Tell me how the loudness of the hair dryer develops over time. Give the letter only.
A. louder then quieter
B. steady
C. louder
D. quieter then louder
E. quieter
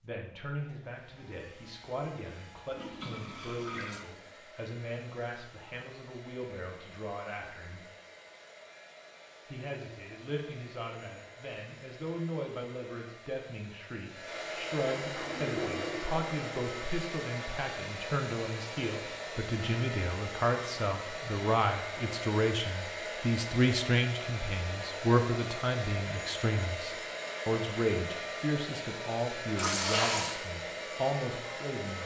C.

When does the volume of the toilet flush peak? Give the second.
30 s.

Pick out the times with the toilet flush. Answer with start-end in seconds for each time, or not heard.
2.7-4.0, 14.5-16.5, 29.6-30.4.